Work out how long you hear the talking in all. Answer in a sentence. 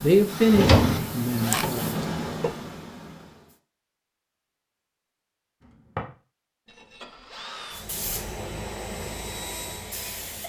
You can hear the talking for 2 seconds altogether.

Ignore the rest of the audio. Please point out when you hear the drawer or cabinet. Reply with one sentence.
The drawer or cabinet can be heard from 0.5 to 1.7 s.